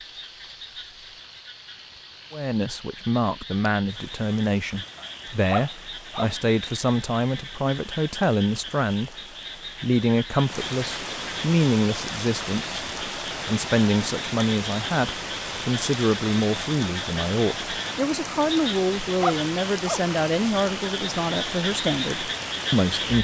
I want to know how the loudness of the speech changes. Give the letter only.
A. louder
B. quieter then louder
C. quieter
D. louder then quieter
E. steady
E.